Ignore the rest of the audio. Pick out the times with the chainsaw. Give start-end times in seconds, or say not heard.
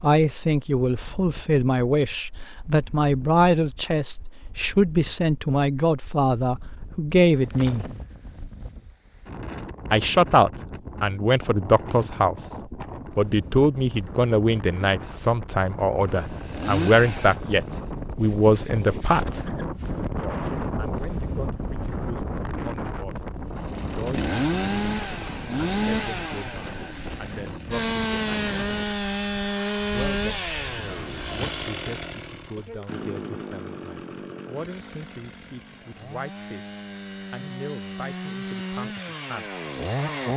16.1-18.1, 23.6-40.3.